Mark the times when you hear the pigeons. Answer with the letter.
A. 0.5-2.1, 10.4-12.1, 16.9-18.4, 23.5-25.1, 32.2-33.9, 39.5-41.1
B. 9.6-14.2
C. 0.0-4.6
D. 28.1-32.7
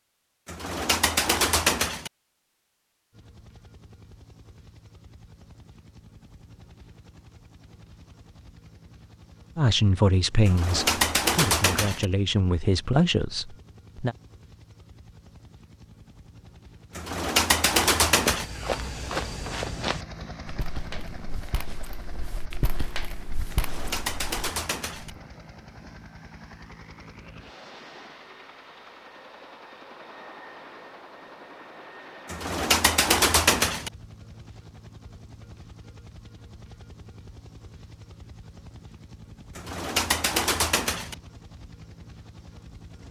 A.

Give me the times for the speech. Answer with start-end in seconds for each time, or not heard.
9.6-14.2.